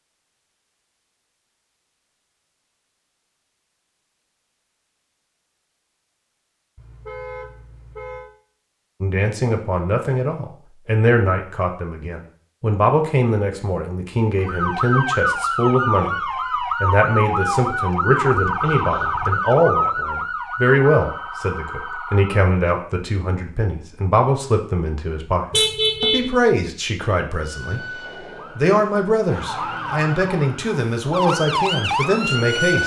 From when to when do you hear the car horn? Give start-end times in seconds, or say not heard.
6.8-8.3, 18.6-19.4, 25.5-26.3.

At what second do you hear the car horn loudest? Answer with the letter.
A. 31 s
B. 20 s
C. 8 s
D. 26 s
D.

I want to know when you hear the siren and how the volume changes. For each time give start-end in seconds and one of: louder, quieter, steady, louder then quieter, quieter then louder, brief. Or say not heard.
14.3-22.4 quieter
27.4-32.8 louder.